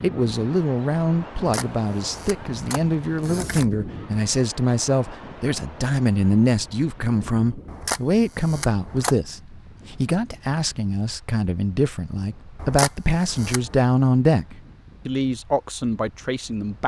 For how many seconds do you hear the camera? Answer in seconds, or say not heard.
5 s.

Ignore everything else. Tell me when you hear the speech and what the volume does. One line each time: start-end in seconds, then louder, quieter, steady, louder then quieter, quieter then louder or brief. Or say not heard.
0.0-16.8 steady.